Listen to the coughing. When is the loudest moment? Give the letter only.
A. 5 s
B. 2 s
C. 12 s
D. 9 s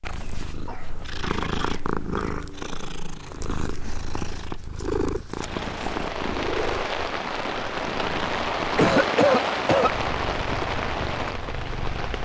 D.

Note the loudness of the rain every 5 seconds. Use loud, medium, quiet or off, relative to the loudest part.
off, loud, loud.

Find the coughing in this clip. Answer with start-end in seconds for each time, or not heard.
0.2-2.5, 8.8-9.9.